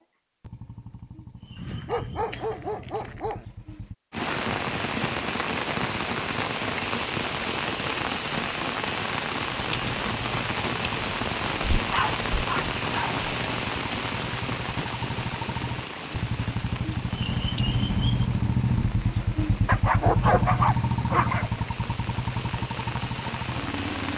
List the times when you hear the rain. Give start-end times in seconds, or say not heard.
4.1-24.1.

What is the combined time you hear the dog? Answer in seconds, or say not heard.
5 s.